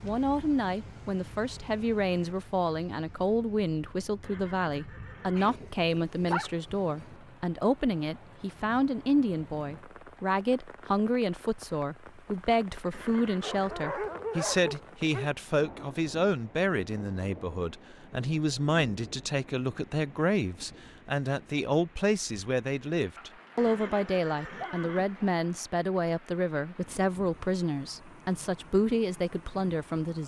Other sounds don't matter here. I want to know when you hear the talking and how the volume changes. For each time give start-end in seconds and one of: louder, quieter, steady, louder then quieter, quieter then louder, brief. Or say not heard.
0.0-30.2 steady.